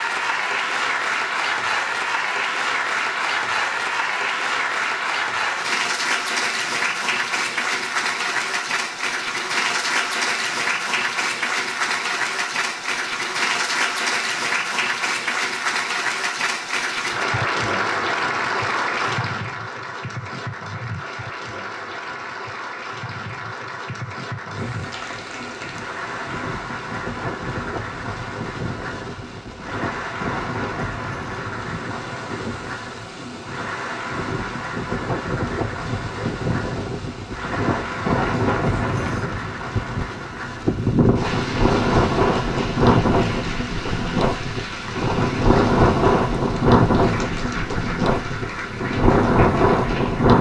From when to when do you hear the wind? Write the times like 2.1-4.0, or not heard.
24.5-50.3.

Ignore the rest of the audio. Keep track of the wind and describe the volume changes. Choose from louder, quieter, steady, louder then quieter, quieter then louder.
louder.